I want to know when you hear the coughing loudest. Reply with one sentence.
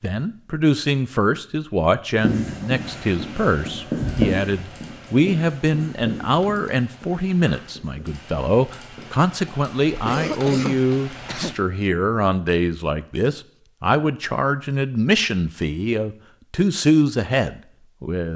The volume of the coughing peaks at 10 seconds.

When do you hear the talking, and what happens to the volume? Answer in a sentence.
You can hear the talking from 0.0 to 18.3 s, at a steady volume.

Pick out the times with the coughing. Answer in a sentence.
You can hear the coughing from 9.8 to 11.6 s.